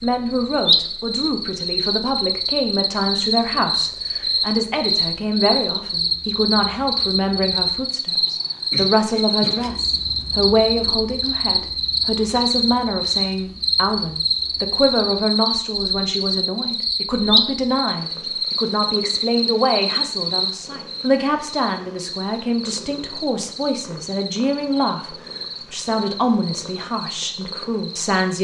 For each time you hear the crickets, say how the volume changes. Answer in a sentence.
You can hear the crickets from 0.0 to 28.1 s, getting quieter.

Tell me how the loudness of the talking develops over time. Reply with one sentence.
The volume of the talking stays about the same.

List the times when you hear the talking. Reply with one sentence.
You can hear the talking from 0.0 to 28.3 s.